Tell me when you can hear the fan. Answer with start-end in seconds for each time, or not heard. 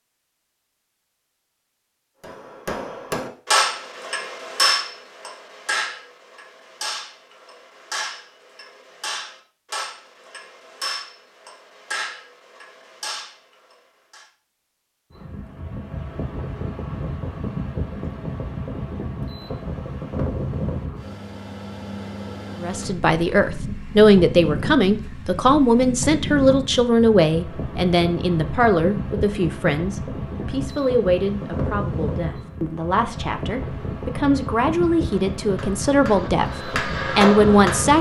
15.1-37.9.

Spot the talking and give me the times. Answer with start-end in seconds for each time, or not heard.
22.6-37.9.